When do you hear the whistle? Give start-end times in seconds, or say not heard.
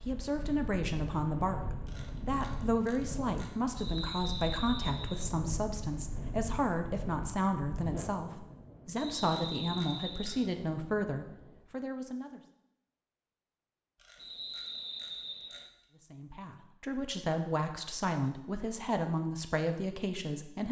3.8-5.2, 8.9-10.4, 14.2-15.7.